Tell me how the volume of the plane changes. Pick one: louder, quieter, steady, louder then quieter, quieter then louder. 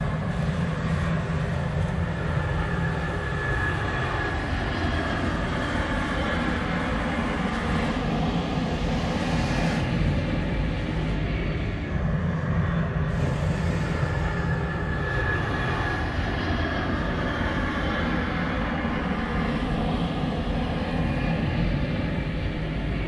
steady.